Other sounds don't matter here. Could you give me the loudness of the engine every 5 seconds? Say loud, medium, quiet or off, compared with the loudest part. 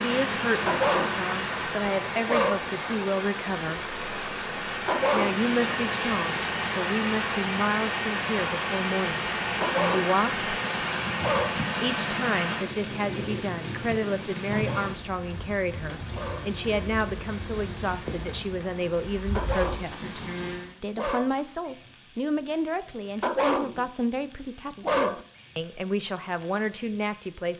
loud, loud, loud, off, off, off.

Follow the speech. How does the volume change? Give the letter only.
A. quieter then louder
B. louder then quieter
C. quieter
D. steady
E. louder
D.